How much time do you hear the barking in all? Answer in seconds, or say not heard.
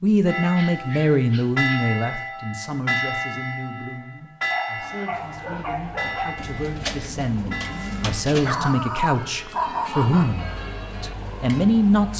5 s.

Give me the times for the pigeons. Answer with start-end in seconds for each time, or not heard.
6.3-8.8.